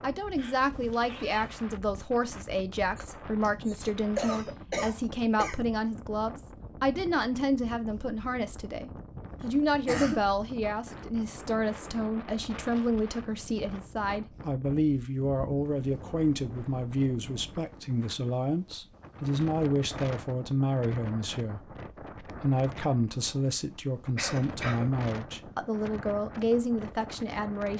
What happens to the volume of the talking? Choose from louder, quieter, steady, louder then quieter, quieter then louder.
steady.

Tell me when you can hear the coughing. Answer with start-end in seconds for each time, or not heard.
3.0-5.5, 9.4-10.2, 24.1-24.9.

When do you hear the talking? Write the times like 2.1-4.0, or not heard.
0.0-27.7.